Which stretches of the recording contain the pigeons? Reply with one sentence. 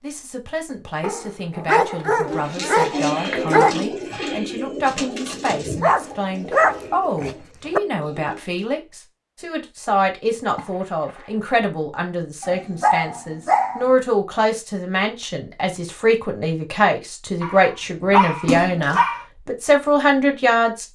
You can hear the pigeons from 2.1 to 8.7 s.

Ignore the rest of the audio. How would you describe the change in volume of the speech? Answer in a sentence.
The volume of the speech goes up.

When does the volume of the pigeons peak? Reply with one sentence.
The volume of the pigeons peaks at 3 seconds.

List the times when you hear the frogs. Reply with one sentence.
The frogs can't be heard in this clip.